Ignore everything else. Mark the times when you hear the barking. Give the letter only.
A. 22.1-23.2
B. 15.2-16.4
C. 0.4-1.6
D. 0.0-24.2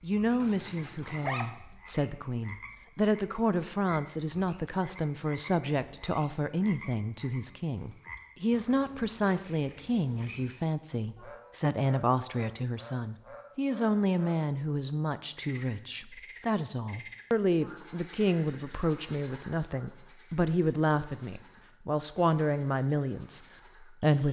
C.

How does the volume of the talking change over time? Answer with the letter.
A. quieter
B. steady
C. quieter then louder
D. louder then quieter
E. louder
B.